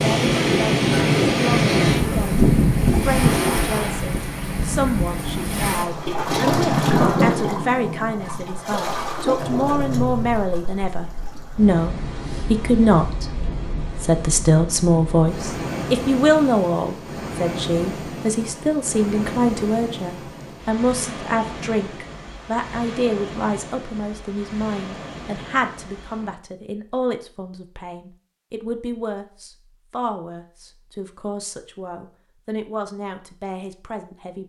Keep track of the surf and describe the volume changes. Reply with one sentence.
The volume of the surf goes down.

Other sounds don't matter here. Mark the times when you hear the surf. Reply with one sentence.
You can hear the surf from 0.0 to 26.4 s.